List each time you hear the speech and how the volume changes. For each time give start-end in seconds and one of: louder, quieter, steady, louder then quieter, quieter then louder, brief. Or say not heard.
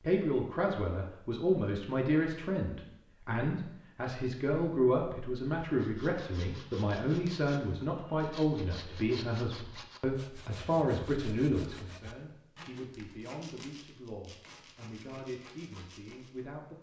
0.0-16.7 quieter.